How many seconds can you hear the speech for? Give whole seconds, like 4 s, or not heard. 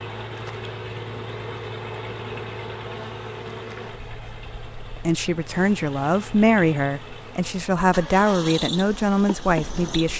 5 s.